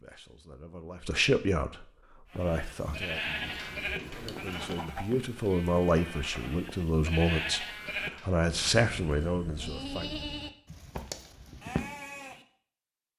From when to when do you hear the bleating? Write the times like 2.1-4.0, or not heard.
2.3-12.4.